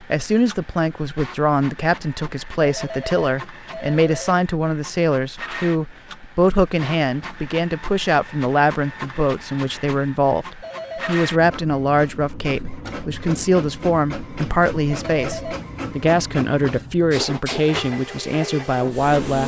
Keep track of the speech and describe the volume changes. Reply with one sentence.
The volume of the speech stays about the same.